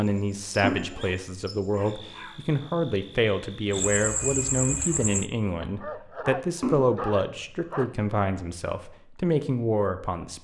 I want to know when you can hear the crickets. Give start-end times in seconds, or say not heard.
0.0-5.3.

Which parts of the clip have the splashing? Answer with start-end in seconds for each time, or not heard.
0.6-1.1, 6.6-7.2.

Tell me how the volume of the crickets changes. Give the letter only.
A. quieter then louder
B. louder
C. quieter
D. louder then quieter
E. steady
B.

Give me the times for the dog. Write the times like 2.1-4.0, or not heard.
0.9-2.5, 5.6-8.1.